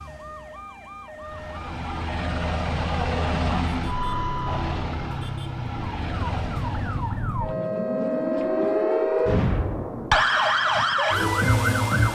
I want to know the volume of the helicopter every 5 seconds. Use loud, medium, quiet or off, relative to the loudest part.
loud, medium, off.